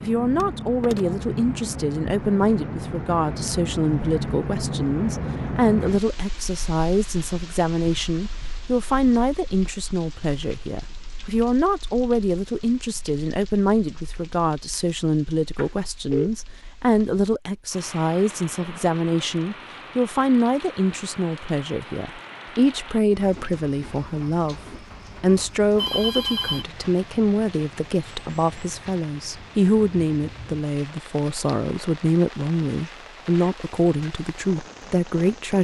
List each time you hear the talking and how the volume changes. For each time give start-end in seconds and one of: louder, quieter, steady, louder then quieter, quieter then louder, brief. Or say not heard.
0.0-35.5 steady.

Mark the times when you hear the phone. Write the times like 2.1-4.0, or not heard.
0.4-1.1, 15.6-16.3, 25.8-26.6.